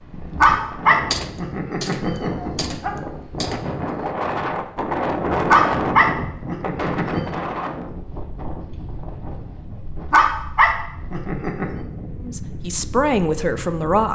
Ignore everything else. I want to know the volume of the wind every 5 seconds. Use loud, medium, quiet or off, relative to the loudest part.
loud, loud, medium.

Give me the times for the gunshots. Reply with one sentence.
You can hear the gunshots from 1.1 to 4.0 s.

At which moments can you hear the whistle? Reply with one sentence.
You can't hear the whistle here.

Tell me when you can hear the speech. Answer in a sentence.
You can hear the speech from 12.2 to 14.1 s.